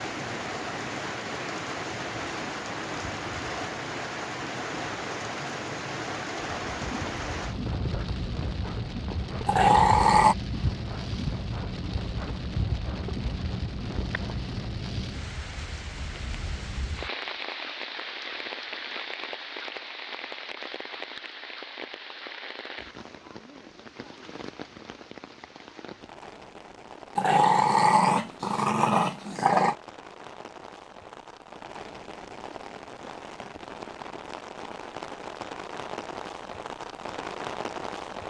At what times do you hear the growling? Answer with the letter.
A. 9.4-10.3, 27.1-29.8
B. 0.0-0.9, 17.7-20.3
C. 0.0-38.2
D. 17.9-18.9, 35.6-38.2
A.